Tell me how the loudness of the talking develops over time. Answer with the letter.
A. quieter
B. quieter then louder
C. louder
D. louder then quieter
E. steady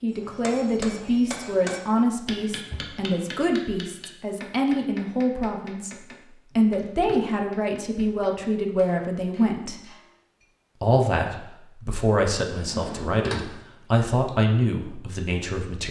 E.